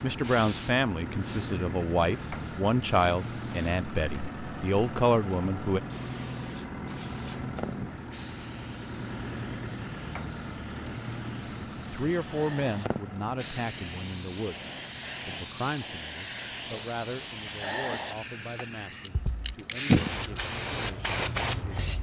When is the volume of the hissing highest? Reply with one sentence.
The loudest moment of the hissing is at 20 seconds.